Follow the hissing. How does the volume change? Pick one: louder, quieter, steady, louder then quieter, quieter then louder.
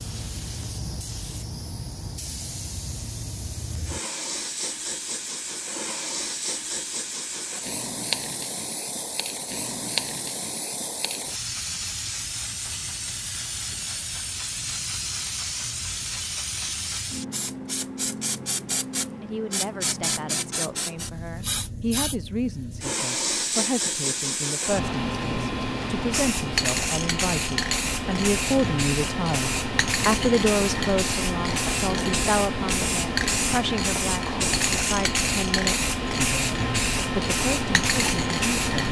louder.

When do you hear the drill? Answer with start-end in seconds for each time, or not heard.
not heard.